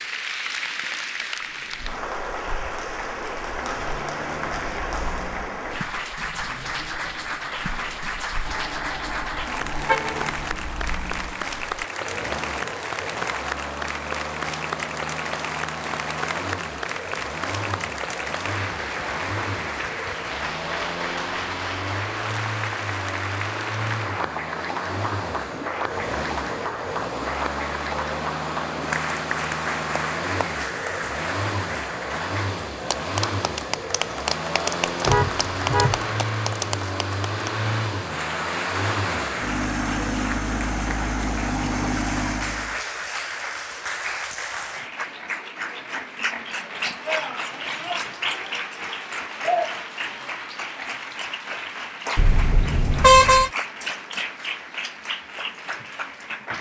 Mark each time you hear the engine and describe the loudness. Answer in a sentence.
The engine can be heard from 1.4 to 42.8 s, getting louder.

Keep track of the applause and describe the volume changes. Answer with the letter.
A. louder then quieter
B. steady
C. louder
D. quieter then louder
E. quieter
B.